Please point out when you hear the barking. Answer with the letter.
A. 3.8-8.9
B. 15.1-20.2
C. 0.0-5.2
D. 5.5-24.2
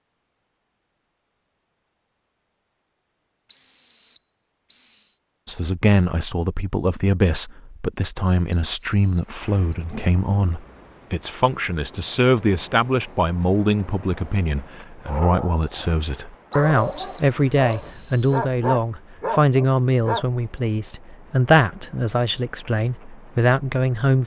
B.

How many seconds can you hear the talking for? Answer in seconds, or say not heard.
19 s.